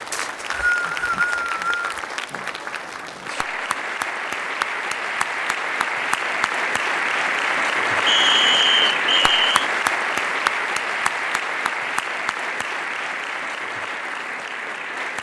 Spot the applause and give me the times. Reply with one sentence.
The applause can be heard from 0.0 to 15.1 s.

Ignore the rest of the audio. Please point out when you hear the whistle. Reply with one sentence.
The whistle can be heard from 0.1 to 1.9 s and from 8.1 to 9.7 s.